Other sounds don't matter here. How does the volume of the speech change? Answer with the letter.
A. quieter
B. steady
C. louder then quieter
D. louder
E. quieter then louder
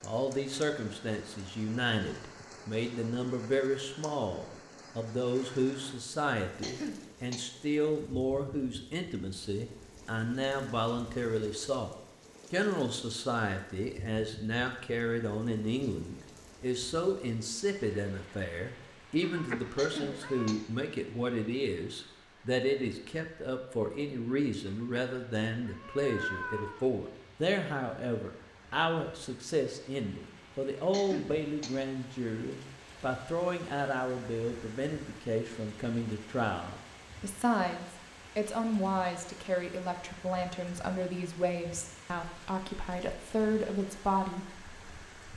B.